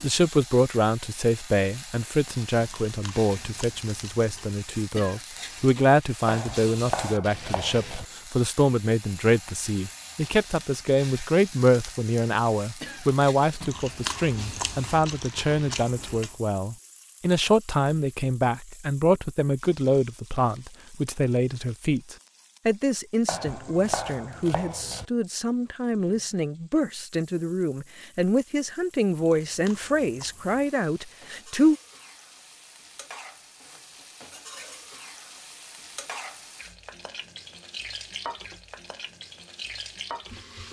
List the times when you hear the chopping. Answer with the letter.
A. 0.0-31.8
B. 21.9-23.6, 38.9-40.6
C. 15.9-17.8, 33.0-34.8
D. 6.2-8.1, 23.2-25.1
D.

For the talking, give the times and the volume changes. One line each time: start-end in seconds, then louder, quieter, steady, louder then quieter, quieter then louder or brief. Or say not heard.
0.0-31.8 steady.